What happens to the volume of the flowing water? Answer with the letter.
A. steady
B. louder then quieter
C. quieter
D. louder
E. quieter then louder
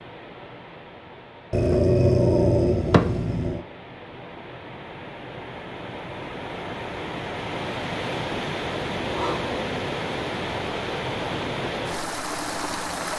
D.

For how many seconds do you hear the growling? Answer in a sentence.
The growling can be heard for 3 seconds in total.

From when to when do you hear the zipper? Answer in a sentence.
You can't hear the zipper here.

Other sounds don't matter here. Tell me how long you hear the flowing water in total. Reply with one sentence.
The flowing water can be heard for 13 seconds in total.